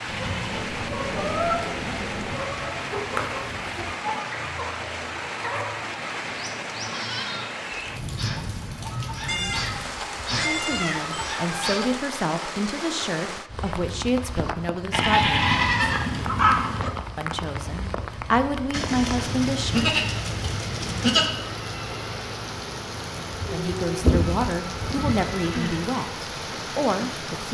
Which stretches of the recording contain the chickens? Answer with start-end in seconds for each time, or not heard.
0.0-11.9.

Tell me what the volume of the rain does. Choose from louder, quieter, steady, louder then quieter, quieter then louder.
steady.